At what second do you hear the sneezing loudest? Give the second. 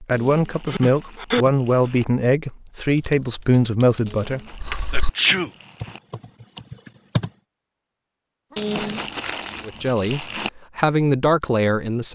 5 s.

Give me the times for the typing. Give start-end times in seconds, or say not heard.
2.9-7.3.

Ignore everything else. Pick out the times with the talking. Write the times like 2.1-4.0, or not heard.
0.0-4.4, 9.7-12.0.